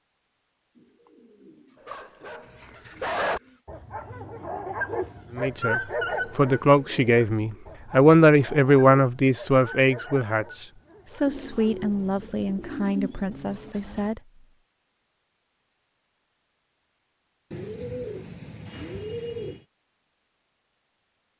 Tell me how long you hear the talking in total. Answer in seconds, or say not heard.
9 s.